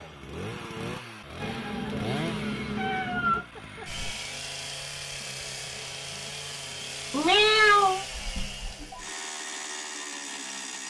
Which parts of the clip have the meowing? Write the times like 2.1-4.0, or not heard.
1.4-3.4, 7.1-8.9.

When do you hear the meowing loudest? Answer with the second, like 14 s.
8 s.